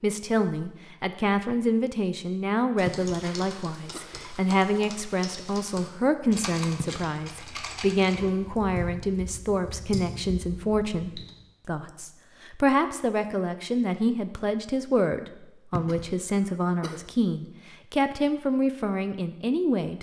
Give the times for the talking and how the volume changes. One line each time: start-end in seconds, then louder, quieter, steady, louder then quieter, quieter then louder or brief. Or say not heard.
0.0-19.9 steady.